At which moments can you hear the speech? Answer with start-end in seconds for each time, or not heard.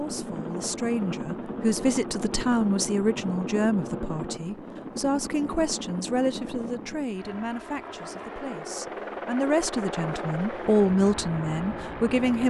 0.0-12.4.